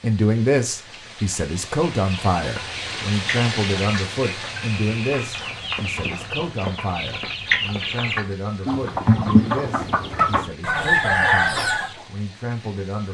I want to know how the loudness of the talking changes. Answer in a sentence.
The loudness of the talking goes down.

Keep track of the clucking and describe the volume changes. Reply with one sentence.
The loudness of the clucking goes up.